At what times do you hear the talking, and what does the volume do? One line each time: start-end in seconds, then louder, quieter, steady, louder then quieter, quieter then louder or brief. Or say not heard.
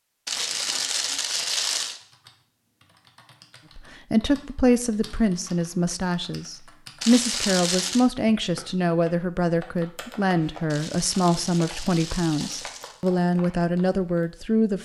3.8-14.8 steady.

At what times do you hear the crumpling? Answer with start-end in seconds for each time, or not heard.
0.2-2.0, 7.0-8.1, 10.7-13.0.